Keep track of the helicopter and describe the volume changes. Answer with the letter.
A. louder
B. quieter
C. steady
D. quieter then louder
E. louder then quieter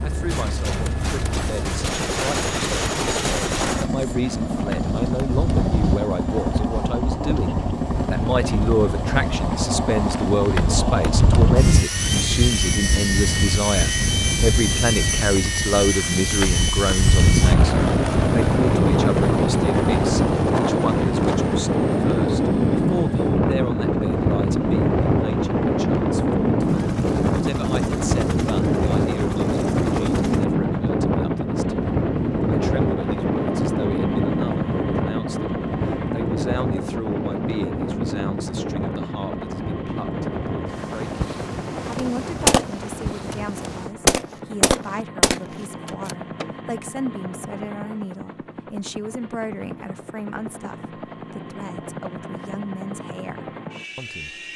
B.